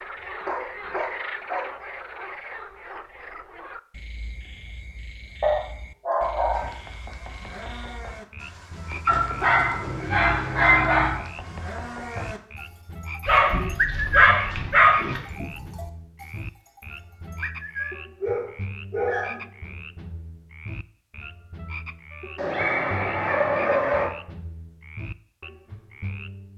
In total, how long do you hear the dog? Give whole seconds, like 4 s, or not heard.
10 s.